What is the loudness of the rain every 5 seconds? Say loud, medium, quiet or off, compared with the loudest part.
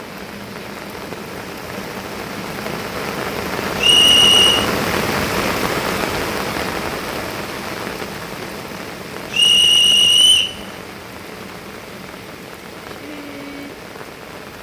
loud, loud, medium.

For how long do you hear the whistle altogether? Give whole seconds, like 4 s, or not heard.
2 s.